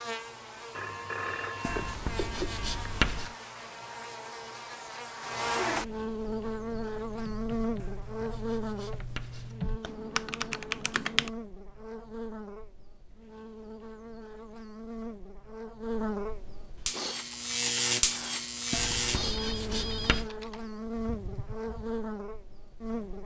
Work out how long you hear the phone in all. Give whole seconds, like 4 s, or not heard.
3 s.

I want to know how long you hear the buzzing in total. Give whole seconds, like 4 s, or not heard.
23 s.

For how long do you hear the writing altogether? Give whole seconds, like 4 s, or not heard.
5 s.